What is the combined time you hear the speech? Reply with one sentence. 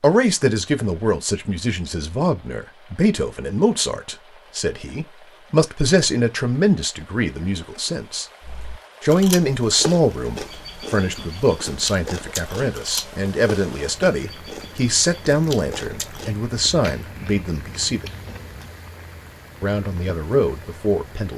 The speech can be heard for 19 seconds in total.